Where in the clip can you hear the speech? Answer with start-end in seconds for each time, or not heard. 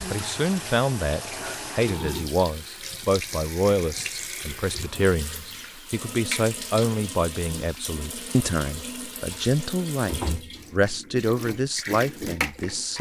0.1-12.9.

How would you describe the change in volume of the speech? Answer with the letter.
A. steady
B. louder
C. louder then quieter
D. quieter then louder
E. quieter
A.